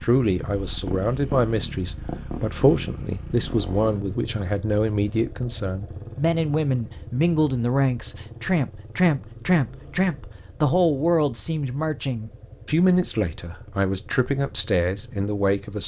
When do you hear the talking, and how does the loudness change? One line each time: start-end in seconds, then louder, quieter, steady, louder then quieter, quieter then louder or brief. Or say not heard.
0.0-15.8 steady.